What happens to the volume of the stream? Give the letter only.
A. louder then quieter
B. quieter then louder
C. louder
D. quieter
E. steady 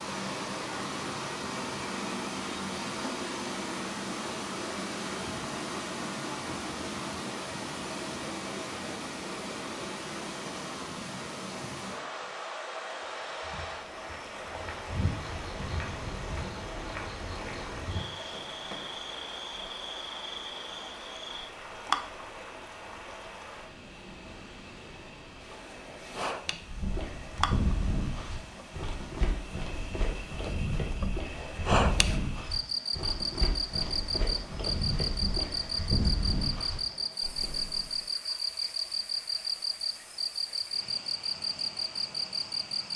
D.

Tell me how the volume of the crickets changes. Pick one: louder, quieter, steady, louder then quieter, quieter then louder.
louder.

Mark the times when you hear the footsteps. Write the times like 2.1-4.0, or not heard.
13.2-18.9, 26.6-38.0.